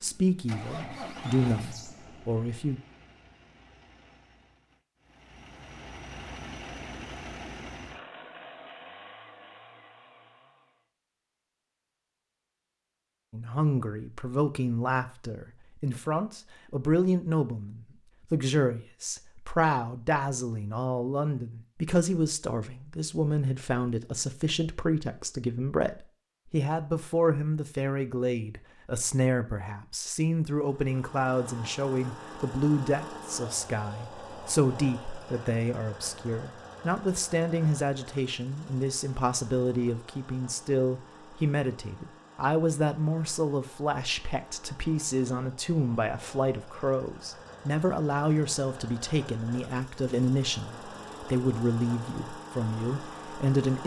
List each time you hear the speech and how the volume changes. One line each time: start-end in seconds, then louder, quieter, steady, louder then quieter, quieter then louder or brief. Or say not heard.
0.0-2.8 brief
13.3-53.8 steady.